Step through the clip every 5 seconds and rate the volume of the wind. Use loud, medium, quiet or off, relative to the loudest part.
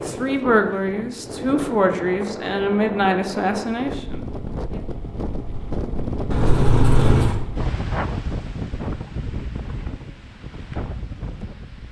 loud, loud, medium.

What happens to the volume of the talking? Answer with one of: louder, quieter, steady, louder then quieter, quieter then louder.
quieter.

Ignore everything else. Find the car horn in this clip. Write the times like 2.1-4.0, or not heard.
6.3-7.4.